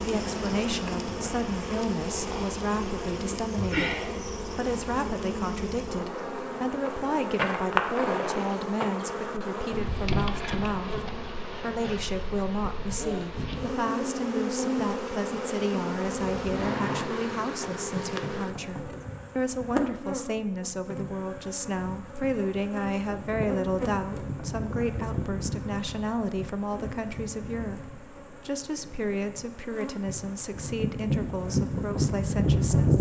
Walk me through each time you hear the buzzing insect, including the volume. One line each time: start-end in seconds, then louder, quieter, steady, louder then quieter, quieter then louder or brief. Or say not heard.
0.0-32.9 steady.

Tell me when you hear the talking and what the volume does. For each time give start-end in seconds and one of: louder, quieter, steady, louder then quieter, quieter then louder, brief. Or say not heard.
0.0-32.9 steady.